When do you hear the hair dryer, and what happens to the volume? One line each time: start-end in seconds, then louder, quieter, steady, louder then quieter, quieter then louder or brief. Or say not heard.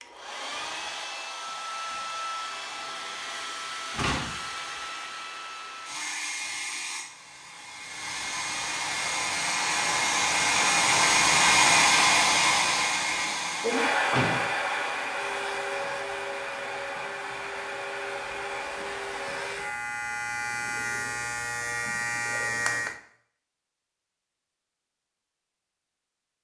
0.0-19.8 louder then quieter.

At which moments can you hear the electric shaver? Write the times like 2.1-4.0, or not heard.
15.1-23.0.